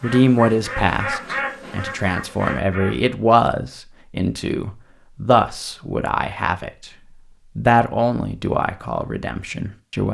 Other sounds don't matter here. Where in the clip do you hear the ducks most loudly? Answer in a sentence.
The volume of the ducks peaks at 1 second.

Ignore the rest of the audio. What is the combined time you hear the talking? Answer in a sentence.
The talking can be heard for 9 seconds in total.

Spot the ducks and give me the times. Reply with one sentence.
You can hear the ducks from 0.0 to 3.1 s.